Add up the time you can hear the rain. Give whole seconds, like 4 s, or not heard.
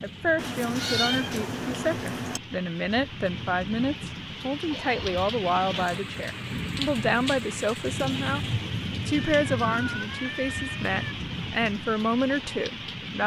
13 s.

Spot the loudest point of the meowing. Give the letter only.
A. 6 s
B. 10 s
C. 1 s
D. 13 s
C.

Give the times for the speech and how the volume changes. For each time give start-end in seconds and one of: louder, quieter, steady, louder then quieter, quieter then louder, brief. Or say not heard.
0.0-13.2 steady.